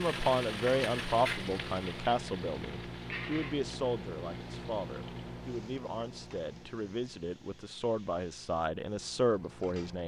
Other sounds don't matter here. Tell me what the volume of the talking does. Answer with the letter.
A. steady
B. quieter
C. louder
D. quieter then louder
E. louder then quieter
D.